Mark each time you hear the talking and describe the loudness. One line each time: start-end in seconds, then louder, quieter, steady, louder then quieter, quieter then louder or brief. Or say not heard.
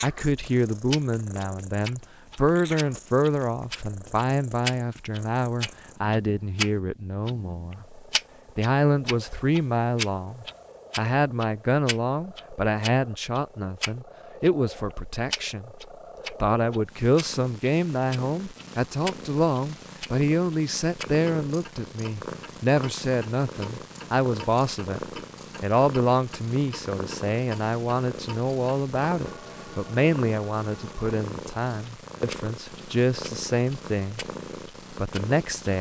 0.0-34.2 steady
34.9-35.7 brief.